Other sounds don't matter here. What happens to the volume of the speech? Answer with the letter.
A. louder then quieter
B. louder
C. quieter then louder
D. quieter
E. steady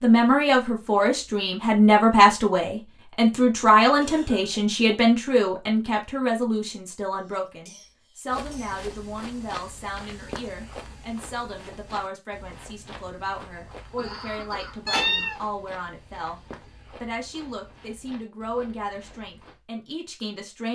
D.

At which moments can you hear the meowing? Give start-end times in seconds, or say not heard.
14.8-15.4.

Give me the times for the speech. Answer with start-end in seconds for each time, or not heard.
0.0-20.7.